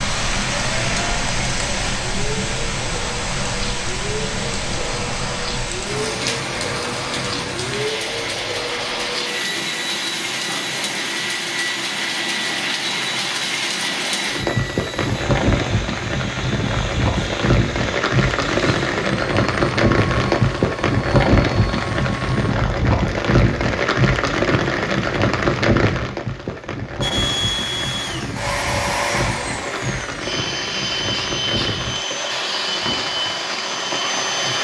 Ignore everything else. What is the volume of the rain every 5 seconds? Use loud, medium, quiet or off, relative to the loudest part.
medium, medium, medium, loud, loud, medium, medium.